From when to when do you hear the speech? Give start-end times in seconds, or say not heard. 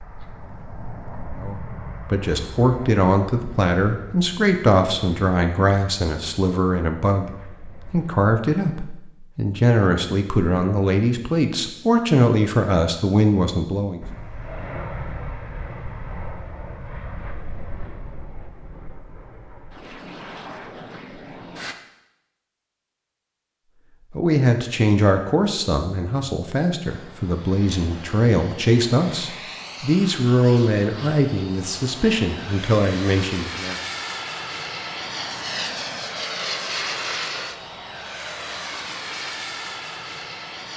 1.4-14.1, 24.1-33.8.